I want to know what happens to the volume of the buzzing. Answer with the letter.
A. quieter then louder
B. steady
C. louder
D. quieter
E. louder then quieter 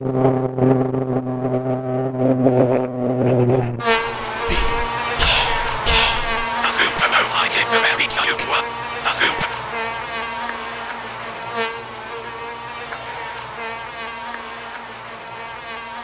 D.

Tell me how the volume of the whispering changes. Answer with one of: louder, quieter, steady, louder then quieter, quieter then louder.
steady.